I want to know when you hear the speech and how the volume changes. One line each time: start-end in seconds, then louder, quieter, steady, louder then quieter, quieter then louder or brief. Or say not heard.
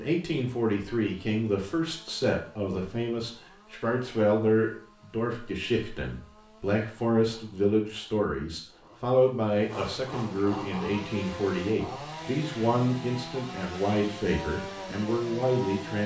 0.0-16.0 steady.